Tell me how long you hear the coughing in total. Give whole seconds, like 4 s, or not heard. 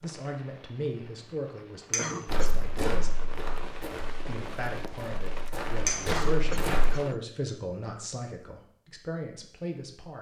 2 s.